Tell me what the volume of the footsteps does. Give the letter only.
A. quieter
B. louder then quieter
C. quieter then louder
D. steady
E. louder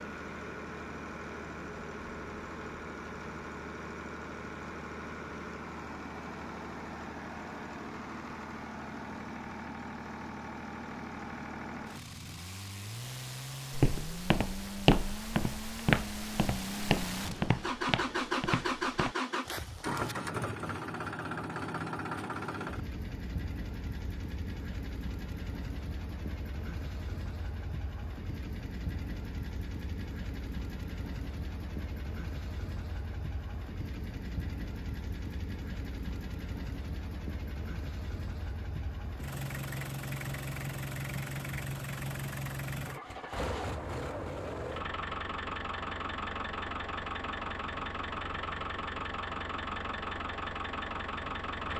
A.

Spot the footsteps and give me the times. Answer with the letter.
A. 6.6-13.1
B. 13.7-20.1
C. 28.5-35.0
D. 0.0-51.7
B.